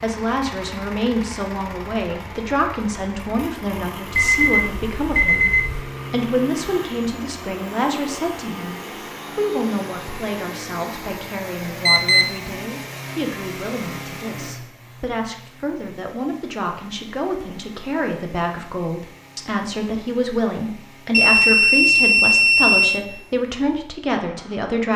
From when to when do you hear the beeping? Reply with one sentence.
The beeping can be heard from 4.2 to 5.8 s, from 11.8 to 12.2 s and from 21.1 to 23.1 s.